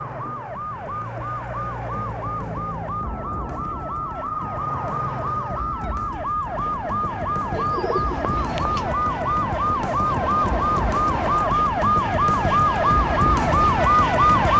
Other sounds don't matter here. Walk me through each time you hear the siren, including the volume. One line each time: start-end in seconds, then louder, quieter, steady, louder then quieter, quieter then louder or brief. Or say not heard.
0.0-14.5 louder.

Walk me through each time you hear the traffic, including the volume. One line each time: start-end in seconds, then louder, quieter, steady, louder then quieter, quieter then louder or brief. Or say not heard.
not heard.